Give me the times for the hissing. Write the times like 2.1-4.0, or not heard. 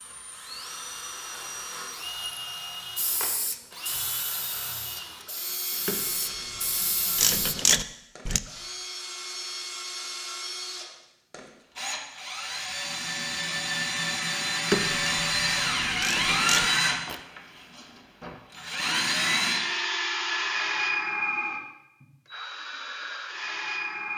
3.0-7.5.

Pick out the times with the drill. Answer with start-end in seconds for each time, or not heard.
0.0-24.1.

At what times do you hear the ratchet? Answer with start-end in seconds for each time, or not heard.
5.7-8.4, 14.7-17.2.